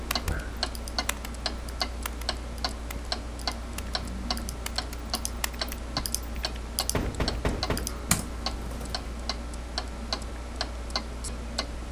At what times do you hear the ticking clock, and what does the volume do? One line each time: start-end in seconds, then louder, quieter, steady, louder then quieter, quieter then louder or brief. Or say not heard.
0.0-11.8 steady.